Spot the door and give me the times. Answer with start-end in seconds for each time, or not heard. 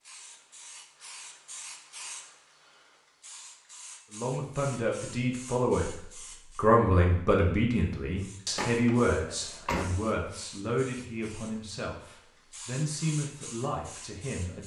8.6-10.0.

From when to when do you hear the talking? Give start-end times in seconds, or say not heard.
4.1-14.6.